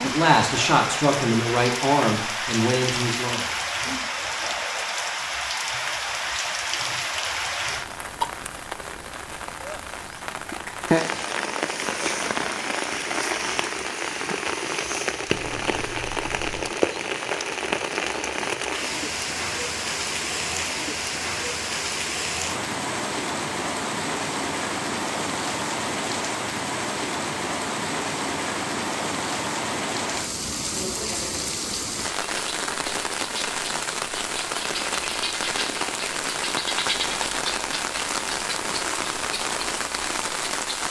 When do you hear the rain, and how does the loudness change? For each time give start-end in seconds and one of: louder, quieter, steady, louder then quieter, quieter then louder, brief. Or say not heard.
0.0-40.8 steady.